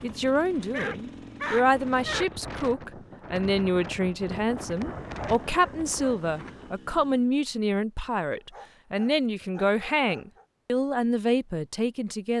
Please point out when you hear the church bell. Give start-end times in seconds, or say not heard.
not heard.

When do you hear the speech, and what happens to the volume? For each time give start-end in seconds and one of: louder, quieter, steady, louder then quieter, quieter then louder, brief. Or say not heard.
0.0-12.3 steady.